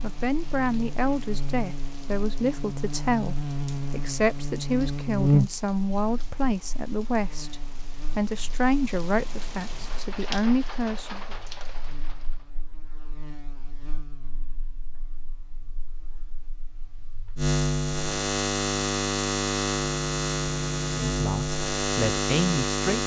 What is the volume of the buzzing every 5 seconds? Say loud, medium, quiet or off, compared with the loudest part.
medium, loud, quiet, loud, loud.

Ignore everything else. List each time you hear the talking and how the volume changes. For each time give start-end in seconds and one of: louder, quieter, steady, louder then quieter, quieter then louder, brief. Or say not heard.
0.0-11.3 steady
21.0-23.0 brief.